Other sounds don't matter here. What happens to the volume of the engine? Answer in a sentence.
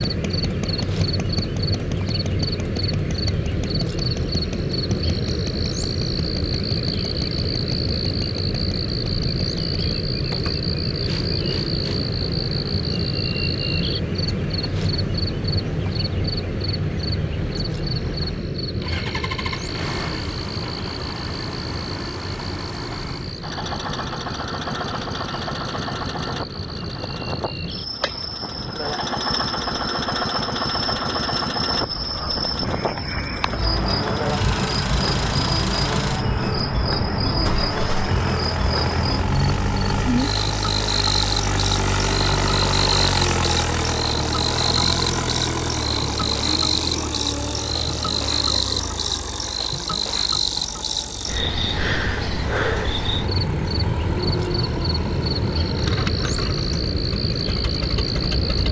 The volume of the engine goes up, then down.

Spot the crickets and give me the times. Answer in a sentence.
The crickets can be heard from 0.0 to 58.6 s.